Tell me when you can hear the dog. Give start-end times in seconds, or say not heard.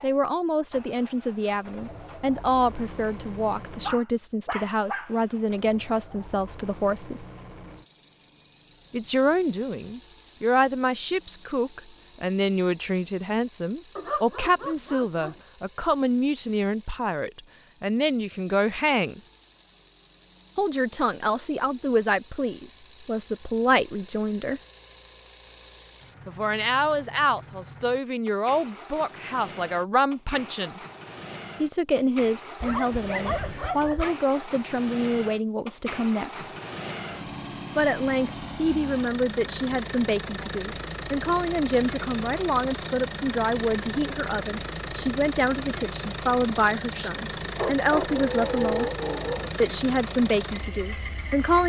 3.8-5.2, 13.9-15.4, 32.6-34.1, 46.9-49.5.